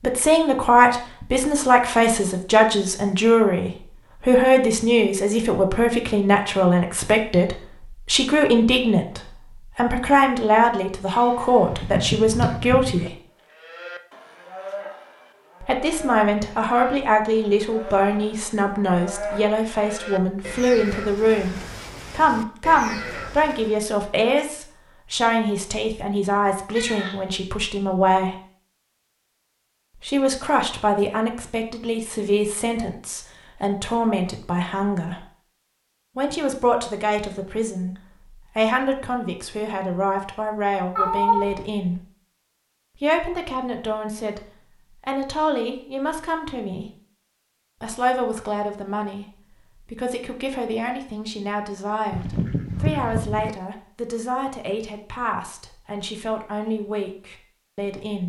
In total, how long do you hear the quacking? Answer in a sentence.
You can hear the quacking for 3 seconds altogether.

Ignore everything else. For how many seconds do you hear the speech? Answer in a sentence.
The speech can be heard for 51 seconds in total.